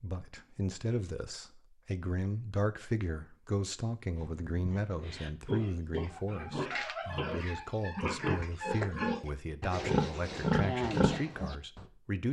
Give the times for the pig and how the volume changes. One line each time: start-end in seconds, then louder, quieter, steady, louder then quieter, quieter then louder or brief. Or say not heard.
4.2-11.8 louder.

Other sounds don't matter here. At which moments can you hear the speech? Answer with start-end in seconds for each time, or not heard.
0.0-12.2.